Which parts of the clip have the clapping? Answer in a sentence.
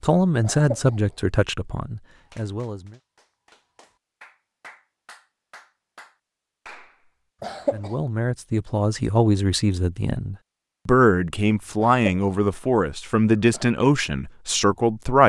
You can hear the clapping from 2.1 to 7.1 s.